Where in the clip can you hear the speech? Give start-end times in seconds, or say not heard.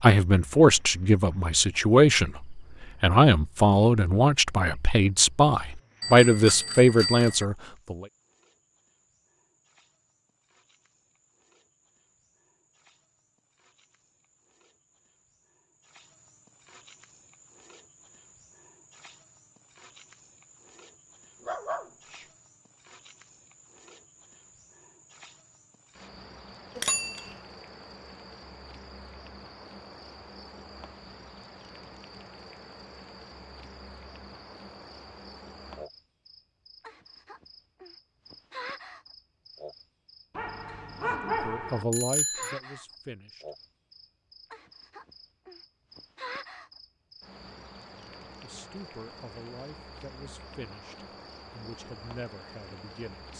0.0-8.1, 41.0-43.5, 48.0-53.3.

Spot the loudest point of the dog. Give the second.
41 s.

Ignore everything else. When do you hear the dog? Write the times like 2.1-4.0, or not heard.
21.4-22.2, 40.4-41.9.